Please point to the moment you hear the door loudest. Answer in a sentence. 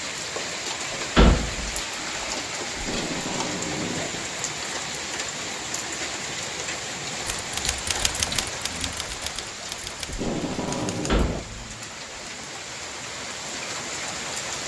The loudest moment of the door is at 1 second.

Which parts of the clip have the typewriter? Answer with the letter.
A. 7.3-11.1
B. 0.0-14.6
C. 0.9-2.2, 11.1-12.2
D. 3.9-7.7
A.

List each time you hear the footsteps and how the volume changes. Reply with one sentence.
The footsteps can't be heard in this clip.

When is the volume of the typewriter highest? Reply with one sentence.
The volume of the typewriter peaks at 8 seconds.